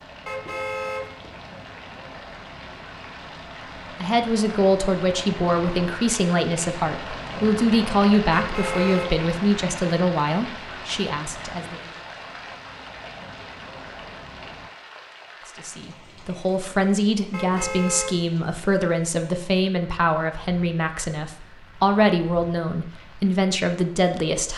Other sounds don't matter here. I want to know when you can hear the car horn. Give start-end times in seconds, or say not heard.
0.2-1.4, 8.3-9.2, 17.3-18.4.